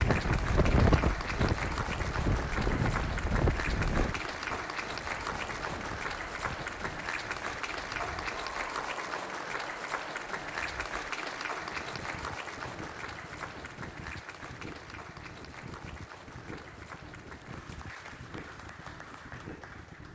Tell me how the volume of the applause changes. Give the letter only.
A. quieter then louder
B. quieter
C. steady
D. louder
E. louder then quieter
B.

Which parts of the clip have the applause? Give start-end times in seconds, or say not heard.
0.0-20.1.